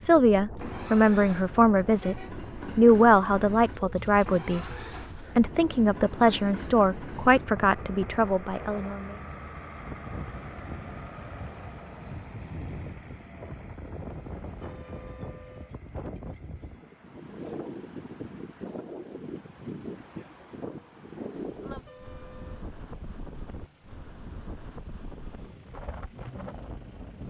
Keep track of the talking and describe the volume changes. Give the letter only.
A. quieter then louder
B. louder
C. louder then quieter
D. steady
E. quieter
E.